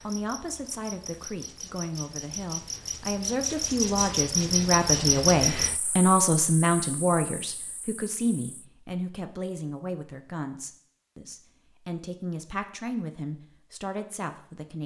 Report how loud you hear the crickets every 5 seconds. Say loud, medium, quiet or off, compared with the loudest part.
loud, loud, off.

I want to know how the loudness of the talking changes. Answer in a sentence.
The volume of the talking goes up, then down.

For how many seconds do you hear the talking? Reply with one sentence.
The talking can be heard for 15 seconds in total.